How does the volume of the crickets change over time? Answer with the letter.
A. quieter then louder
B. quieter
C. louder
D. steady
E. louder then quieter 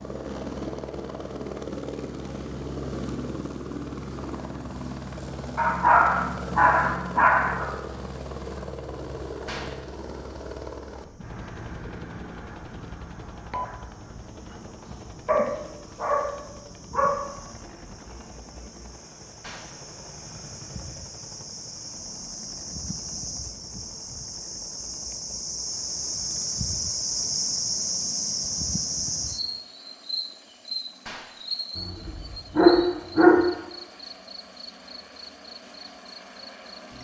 E.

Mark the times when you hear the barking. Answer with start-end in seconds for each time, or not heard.
5.5-7.7, 15.2-17.1, 31.8-33.4.